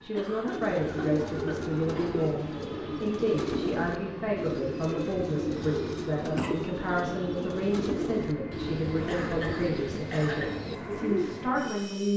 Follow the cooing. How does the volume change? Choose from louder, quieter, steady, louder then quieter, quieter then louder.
steady.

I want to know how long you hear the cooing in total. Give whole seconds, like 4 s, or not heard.
11 s.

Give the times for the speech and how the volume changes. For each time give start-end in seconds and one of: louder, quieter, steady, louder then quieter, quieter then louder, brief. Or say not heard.
0.0-12.1 steady.